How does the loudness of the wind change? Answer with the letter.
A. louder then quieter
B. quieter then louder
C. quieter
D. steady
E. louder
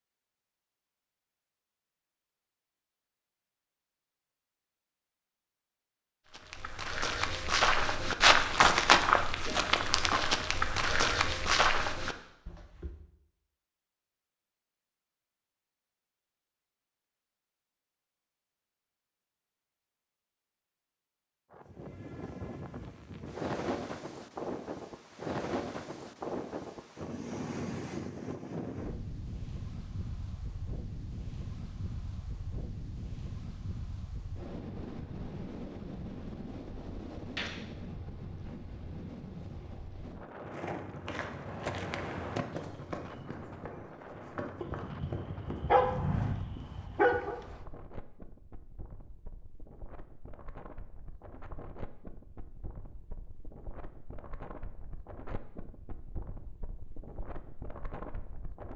C.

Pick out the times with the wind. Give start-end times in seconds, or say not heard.
21.5-58.7.